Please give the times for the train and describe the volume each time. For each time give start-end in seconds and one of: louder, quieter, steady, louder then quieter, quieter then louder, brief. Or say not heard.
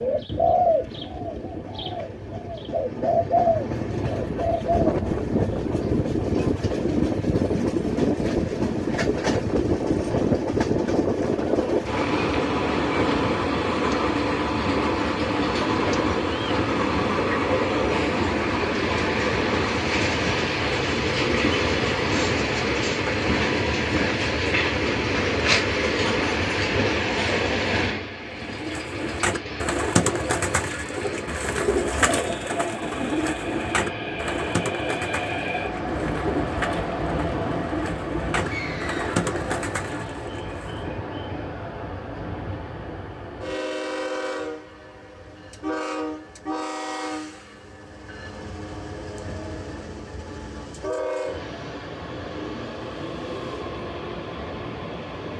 0.0-55.3 quieter.